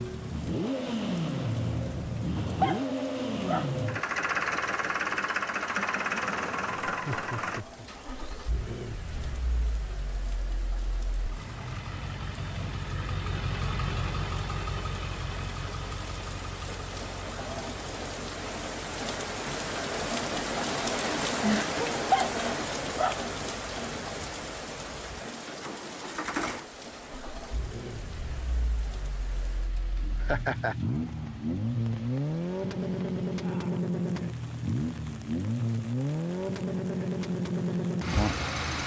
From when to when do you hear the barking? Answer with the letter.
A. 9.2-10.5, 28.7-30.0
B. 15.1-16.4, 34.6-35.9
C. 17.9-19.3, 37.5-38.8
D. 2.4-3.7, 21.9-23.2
D.